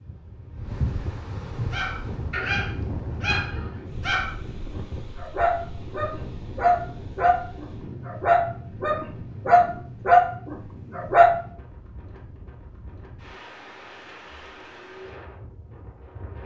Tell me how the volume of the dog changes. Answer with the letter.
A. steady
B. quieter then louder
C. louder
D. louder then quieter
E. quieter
C.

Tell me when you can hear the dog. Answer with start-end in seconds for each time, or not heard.
1.7-11.3.